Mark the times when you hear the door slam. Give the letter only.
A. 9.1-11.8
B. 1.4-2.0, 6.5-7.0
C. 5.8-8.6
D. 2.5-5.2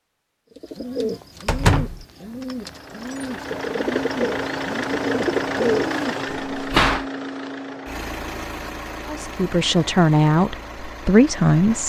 B.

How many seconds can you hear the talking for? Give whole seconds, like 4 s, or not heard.
3 s.